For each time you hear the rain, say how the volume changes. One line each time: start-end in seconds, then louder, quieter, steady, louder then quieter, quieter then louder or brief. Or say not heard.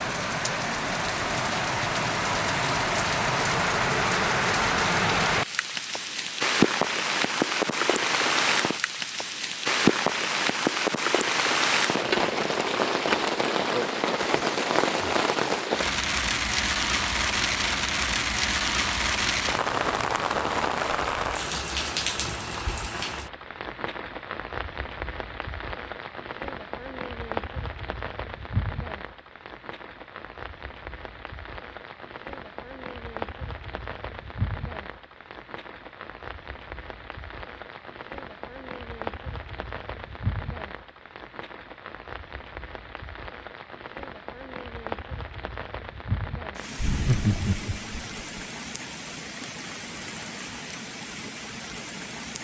0.0-52.3 quieter.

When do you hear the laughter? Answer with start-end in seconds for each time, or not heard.
46.8-48.2.